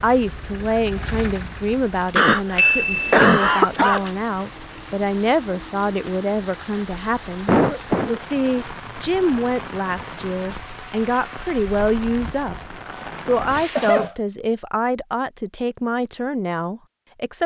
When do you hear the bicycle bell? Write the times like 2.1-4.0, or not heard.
2.5-4.1.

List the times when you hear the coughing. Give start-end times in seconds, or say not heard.
2.1-4.1, 7.5-8.2, 13.6-14.2.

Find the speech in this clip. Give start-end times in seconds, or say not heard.
0.0-17.4.